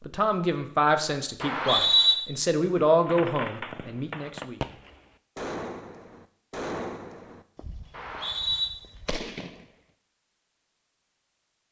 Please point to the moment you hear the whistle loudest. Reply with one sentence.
The volume of the whistle peaks at 2 seconds.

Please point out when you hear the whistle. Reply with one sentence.
You can hear the whistle from 1.4 to 2.1 s and from 7.9 to 8.7 s.